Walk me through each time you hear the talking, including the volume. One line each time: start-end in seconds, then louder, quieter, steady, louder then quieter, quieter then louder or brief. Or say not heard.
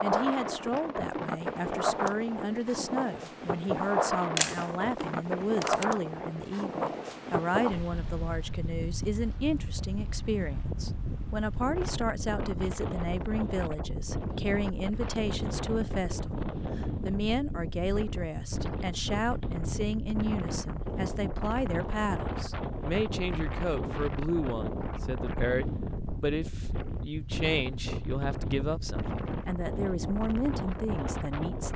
0.0-31.7 steady.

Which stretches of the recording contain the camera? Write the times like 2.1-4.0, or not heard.
4.3-5.8.